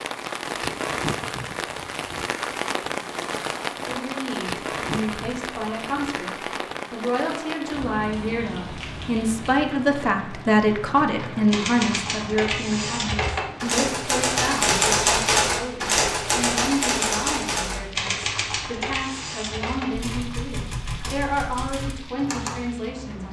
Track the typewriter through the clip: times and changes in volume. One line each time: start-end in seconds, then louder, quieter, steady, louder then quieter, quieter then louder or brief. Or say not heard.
11.5-22.6 louder then quieter.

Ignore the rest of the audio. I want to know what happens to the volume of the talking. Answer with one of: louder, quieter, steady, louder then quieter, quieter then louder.
louder then quieter.